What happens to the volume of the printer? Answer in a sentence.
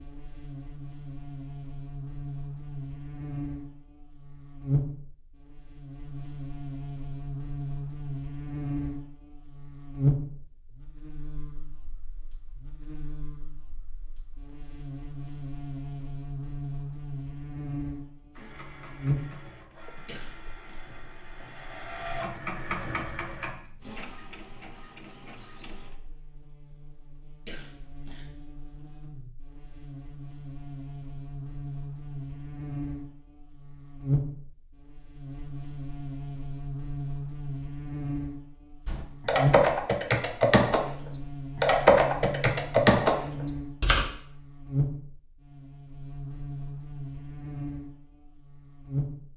The loudness of the printer goes up, then down.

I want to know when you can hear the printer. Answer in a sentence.
The printer can be heard from 18.2 to 25.9 s.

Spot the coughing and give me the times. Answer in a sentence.
You can hear the coughing from 20.1 to 20.8 s and from 27.4 to 28.4 s.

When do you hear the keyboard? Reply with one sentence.
The keyboard can be heard from 38.9 to 40.8 s and from 41.5 to 44.0 s.